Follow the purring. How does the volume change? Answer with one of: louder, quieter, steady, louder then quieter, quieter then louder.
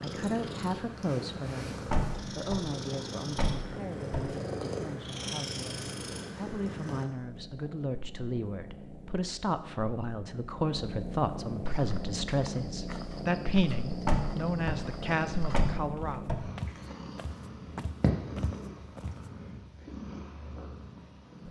steady.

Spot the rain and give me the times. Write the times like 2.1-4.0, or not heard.
not heard.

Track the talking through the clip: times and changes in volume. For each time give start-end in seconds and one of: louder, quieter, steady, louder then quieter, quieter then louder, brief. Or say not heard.
0.0-1.8 brief
2.4-16.2 louder.